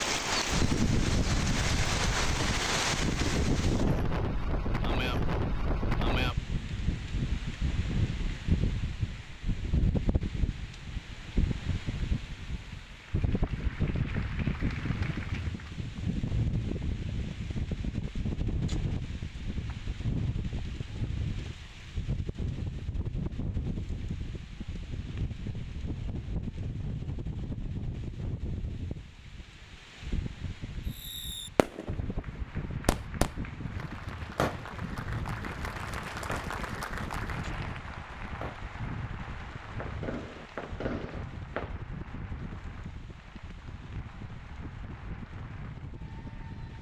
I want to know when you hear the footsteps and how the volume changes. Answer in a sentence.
You can't hear the footsteps here.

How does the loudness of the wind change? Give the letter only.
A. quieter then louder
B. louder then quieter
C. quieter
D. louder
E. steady
C.